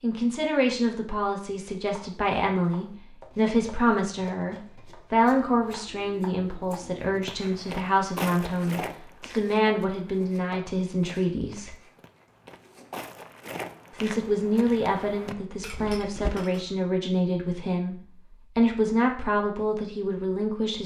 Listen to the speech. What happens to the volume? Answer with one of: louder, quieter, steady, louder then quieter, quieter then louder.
steady.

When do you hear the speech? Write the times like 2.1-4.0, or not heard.
0.0-11.8, 13.9-20.8.